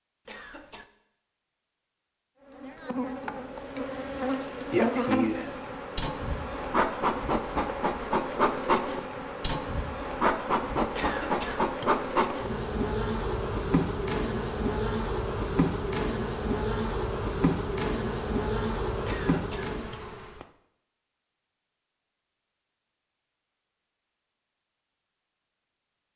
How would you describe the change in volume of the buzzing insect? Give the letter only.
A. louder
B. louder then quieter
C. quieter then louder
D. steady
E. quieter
D.